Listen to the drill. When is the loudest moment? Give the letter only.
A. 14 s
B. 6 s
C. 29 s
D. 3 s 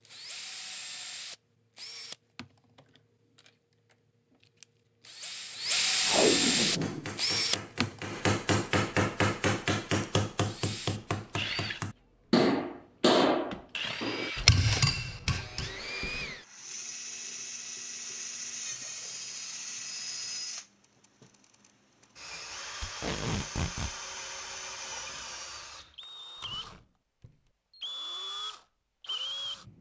B.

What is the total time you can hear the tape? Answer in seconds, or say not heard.
2 s.